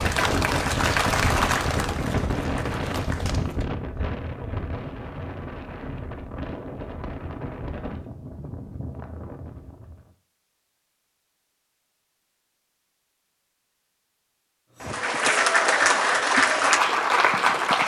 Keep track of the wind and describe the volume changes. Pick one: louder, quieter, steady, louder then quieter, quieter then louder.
quieter.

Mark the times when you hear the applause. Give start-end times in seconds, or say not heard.
0.0-3.6, 14.8-17.8.